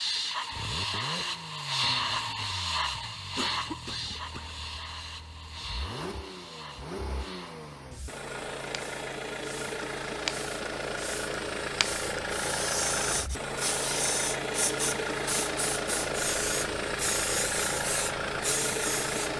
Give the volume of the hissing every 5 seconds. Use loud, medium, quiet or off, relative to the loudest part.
loud, quiet, loud, loud.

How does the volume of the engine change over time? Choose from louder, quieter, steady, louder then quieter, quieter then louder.
louder.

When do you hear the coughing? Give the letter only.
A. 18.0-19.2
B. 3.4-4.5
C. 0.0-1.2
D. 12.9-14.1
B.